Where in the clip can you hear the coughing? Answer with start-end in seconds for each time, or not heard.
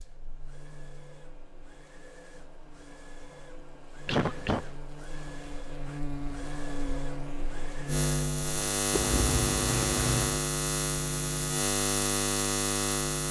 4.0-4.8, 8.9-10.4.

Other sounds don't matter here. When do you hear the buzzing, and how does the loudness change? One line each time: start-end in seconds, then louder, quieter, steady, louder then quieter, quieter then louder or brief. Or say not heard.
0.0-13.2 louder.